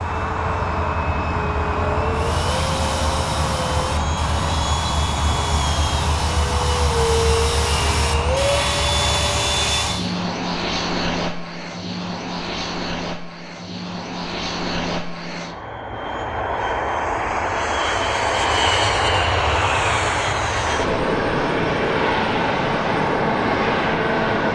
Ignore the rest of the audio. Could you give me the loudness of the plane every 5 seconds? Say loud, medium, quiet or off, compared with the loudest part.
loud, loud, medium, loud, loud.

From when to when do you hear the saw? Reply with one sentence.
The saw can be heard from 2.1 to 10.1 s.